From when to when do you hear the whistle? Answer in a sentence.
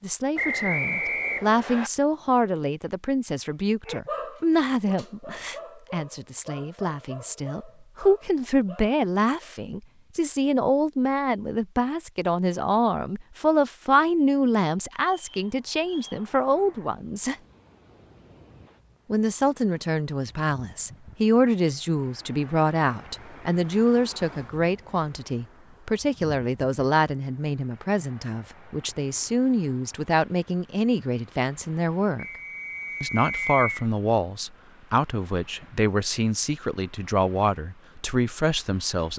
You can hear the whistle from 0.3 to 1.9 s, from 15.1 to 16.2 s and from 32.1 to 33.9 s.